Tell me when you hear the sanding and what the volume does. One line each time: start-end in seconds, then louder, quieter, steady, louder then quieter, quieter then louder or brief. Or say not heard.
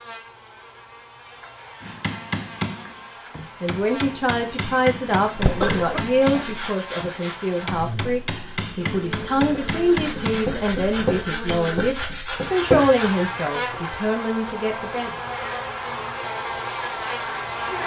6.3-13.3 quieter then louder.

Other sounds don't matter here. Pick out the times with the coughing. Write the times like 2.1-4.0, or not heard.
5.3-6.7.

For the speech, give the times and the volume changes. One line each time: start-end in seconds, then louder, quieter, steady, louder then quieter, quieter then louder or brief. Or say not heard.
3.6-15.1 steady.